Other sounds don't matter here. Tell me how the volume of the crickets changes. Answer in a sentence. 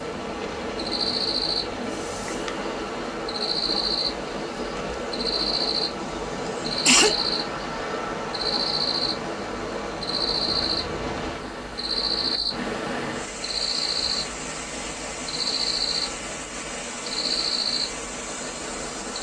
The loudness of the crickets stays about the same.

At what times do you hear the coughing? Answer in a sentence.
You can hear the coughing from 6.0 to 7.2 s.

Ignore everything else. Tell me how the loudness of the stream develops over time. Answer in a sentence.
The volume of the stream stays about the same.